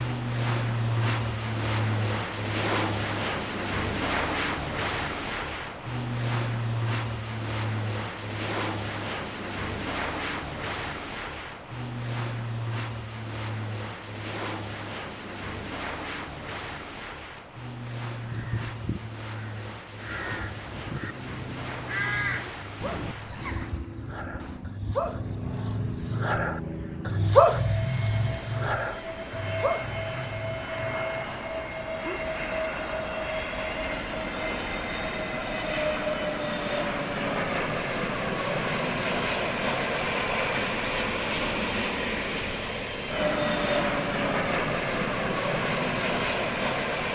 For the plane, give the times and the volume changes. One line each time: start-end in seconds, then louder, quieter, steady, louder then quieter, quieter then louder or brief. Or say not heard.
0.0-47.0 quieter then louder.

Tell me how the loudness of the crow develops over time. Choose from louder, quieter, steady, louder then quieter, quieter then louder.
louder then quieter.